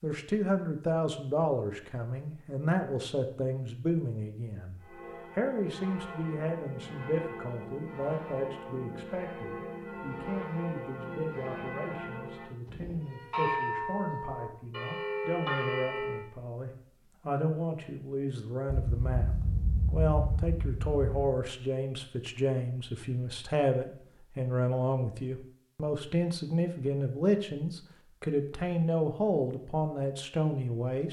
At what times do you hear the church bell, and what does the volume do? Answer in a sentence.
The church bell can be heard from 4.8 to 16.2 s, getting louder.